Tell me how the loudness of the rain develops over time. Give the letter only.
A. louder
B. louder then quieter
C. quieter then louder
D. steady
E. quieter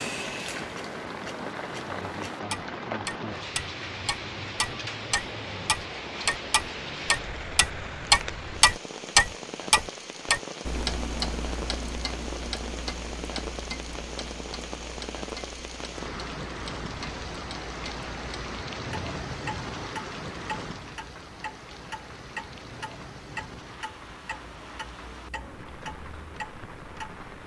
E.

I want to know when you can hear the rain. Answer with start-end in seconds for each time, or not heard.
0.0-27.4.